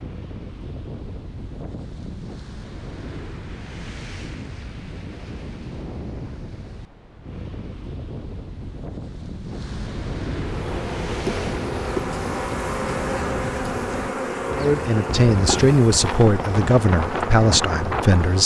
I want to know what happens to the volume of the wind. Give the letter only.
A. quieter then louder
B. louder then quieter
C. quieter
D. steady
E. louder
E.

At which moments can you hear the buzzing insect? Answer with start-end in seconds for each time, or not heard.
10.4-18.4.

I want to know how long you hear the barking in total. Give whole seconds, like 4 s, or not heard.
not heard.